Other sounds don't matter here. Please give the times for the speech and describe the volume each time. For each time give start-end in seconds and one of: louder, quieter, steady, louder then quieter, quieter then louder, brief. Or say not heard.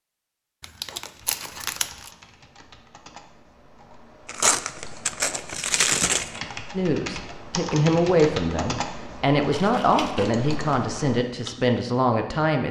6.8-12.6 steady.